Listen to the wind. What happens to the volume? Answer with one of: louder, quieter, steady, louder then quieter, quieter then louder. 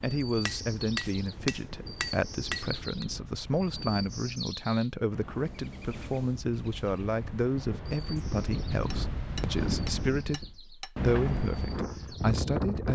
louder.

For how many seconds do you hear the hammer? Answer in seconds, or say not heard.
5 s.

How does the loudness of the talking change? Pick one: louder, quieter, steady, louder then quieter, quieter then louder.
steady.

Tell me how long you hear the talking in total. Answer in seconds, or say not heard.
13 s.